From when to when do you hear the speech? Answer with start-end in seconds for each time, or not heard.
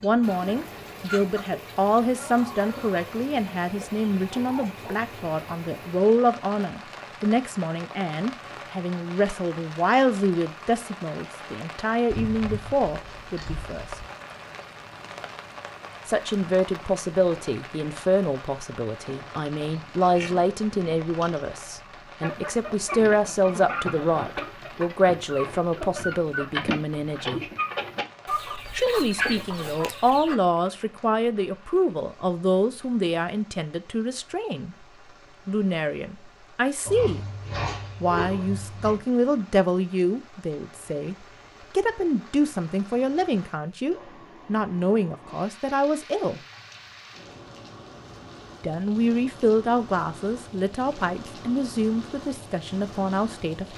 0.0-13.8, 16.1-27.4, 28.8-34.8, 35.5-37.2, 38.0-46.4, 48.6-53.7.